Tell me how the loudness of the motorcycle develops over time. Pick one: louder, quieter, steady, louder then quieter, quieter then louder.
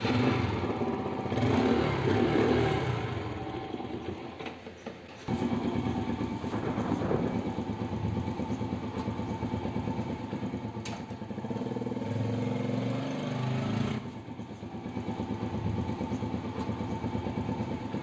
quieter.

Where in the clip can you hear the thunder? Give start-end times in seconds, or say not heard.
6.5-7.7.